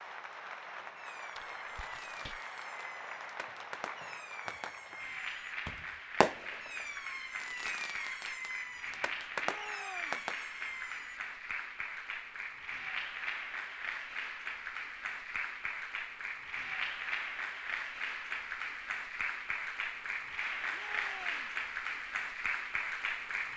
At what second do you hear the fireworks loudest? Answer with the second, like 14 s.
6 s.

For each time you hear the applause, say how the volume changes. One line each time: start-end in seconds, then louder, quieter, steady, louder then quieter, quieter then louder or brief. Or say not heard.
0.0-23.5 louder.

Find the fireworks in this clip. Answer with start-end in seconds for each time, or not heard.
0.8-11.2.